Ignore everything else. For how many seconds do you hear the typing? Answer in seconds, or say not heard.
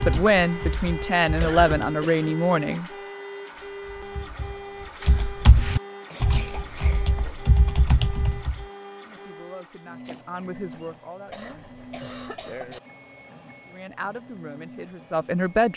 7 s.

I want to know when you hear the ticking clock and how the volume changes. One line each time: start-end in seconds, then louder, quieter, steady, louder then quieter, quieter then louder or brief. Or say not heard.
not heard.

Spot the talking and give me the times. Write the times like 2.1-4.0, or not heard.
0.1-2.9, 9.0-11.7, 13.7-15.7.